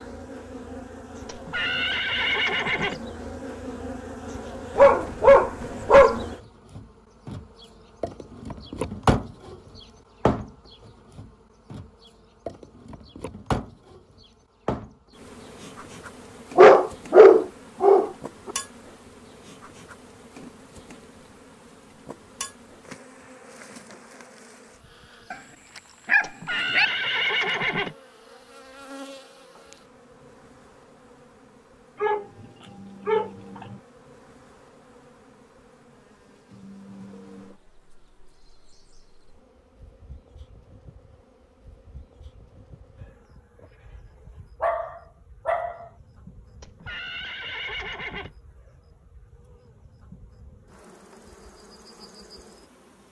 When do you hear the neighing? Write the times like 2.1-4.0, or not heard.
1.2-3.0, 26.2-27.9, 46.6-48.4.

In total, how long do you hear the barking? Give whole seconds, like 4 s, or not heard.
8 s.